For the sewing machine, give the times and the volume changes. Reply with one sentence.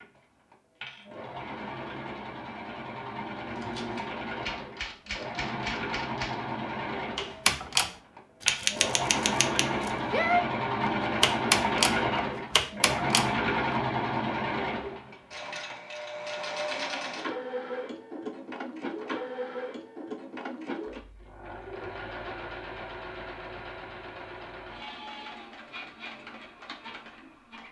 You can hear the sewing machine from 0.0 to 27.6 s, getting louder then quieter.